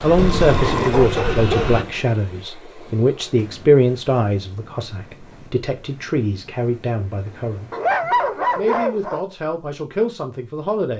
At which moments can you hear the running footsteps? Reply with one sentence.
You can't hear the running footsteps here.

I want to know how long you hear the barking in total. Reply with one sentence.
You can hear the barking for 3 seconds altogether.